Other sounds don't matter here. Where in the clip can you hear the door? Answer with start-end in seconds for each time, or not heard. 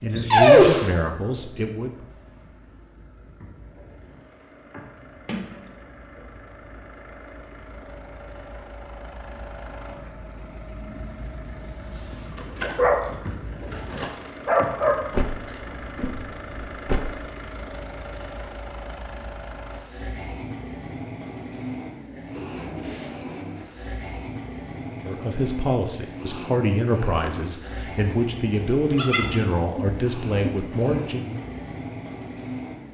5.2-5.8, 15.1-17.1, 22.4-23.3.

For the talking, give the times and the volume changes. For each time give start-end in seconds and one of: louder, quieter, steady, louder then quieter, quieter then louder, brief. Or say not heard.
0.0-2.0 brief
25.0-31.4 steady.